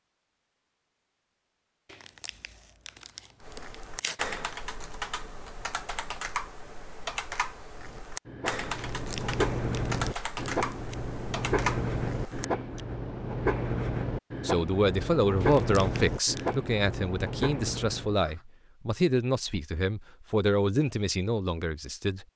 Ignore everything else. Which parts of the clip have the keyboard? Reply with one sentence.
The keyboard can be heard from 3.4 to 12.8 s.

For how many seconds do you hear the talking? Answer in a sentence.
The talking can be heard for 8 seconds in total.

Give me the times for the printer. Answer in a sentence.
The printer can't be heard in this clip.